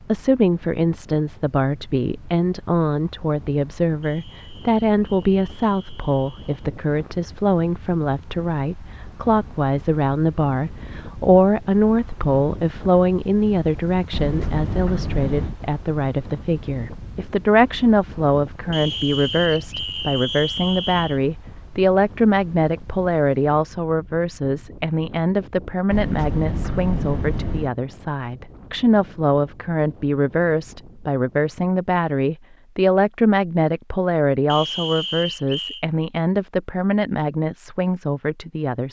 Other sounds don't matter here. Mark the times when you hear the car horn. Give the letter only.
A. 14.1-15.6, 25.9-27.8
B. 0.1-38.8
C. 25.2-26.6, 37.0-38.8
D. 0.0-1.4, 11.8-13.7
A.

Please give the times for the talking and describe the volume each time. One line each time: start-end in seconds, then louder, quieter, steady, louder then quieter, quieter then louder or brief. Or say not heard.
0.1-38.8 steady.